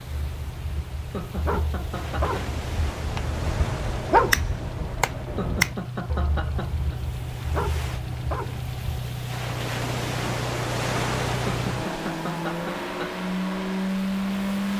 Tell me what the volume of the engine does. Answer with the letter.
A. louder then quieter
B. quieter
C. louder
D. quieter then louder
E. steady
C.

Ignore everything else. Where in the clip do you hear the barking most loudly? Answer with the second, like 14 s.
4 s.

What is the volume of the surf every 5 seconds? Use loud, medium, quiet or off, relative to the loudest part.
medium, medium, loud.